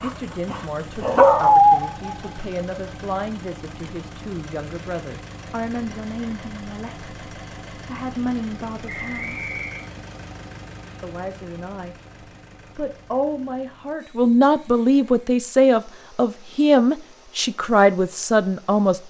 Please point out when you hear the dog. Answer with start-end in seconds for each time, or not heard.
0.0-2.4.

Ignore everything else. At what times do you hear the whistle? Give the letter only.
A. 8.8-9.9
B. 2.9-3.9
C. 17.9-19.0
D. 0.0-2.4
A.